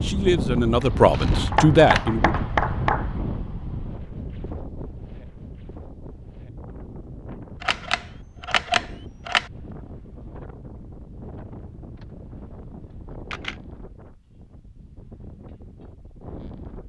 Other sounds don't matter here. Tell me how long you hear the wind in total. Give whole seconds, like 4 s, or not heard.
17 s.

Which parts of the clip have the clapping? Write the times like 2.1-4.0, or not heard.
1.5-3.1.